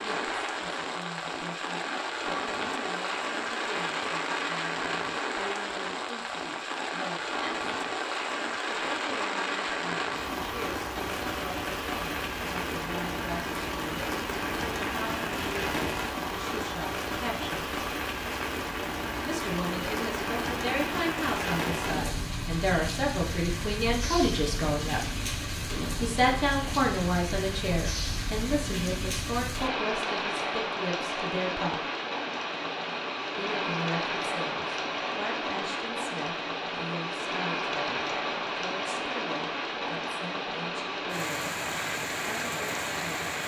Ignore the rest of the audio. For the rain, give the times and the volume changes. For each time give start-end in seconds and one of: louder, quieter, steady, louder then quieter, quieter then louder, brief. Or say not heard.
0.0-43.4 steady.